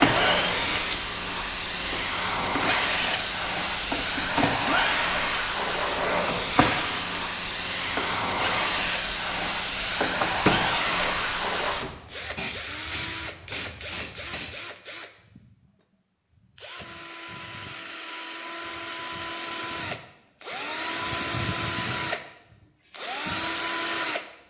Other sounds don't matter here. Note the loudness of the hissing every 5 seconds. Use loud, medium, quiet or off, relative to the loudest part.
loud, loud, loud, off, off.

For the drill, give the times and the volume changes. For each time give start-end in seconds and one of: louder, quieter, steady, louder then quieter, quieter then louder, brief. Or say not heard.
0.0-24.2 quieter then louder.